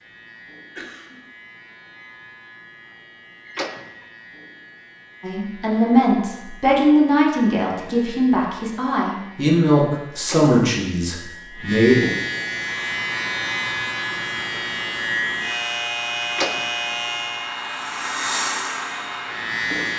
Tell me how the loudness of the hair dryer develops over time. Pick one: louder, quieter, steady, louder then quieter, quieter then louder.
louder.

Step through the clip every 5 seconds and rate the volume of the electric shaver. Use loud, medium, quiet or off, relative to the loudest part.
quiet, quiet, loud, loud.